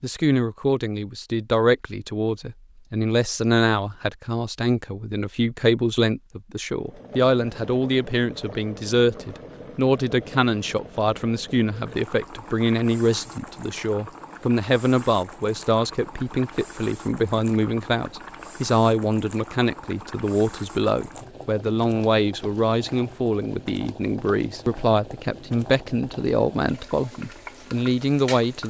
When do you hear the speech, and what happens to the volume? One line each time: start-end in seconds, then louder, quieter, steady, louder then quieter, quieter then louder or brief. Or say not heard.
0.0-28.6 steady.